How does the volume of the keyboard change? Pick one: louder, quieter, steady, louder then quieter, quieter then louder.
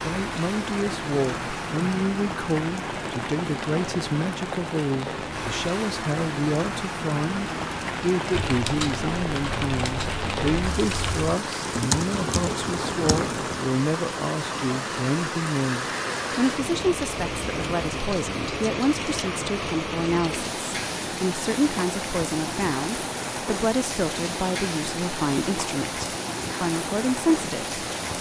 louder then quieter.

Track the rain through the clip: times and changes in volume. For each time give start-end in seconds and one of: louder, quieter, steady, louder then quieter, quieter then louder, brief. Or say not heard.
0.0-28.1 steady.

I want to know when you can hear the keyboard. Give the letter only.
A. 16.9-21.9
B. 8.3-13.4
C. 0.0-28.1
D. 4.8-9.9
B.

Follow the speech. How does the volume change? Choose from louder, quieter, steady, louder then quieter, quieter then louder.
steady.